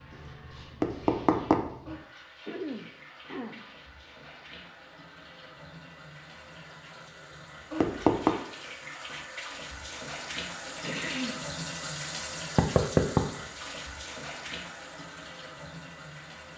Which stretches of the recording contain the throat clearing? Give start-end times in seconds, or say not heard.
2.5-3.6, 10.7-11.6.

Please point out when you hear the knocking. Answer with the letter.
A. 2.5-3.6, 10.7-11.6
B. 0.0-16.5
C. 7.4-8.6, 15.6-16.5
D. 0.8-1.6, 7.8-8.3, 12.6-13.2
D.